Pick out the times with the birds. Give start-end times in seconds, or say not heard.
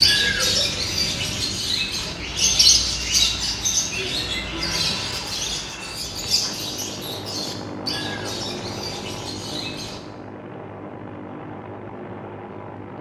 0.0-10.0.